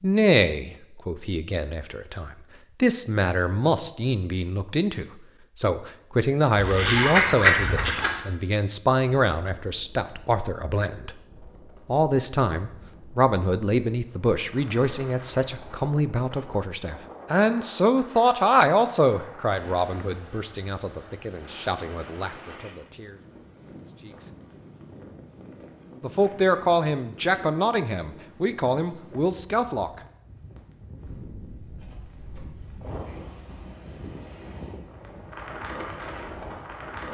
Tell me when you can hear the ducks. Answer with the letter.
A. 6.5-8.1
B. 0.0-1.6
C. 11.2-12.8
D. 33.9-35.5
A.